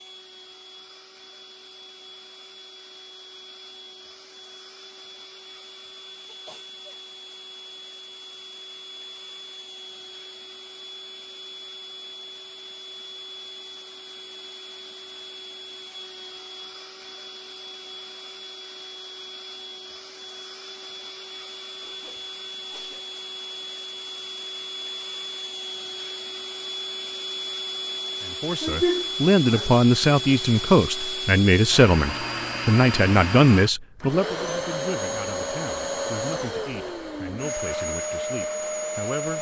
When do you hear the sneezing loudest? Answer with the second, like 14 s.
29 s.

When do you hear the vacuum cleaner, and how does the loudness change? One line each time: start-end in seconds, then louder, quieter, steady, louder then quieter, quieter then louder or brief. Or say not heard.
0.0-39.3 louder.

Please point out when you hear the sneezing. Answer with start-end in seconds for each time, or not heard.
6.2-7.0, 21.8-23.1, 28.6-29.8.